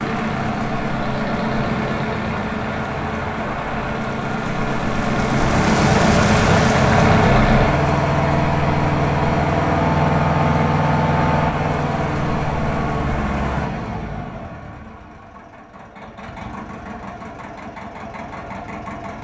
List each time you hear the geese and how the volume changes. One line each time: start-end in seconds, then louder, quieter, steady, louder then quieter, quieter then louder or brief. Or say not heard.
not heard.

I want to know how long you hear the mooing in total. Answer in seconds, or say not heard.
not heard.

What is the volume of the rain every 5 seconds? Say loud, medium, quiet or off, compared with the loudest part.
medium, loud, medium, off.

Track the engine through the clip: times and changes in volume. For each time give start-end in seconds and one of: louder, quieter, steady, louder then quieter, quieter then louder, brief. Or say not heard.
0.0-19.1 louder then quieter.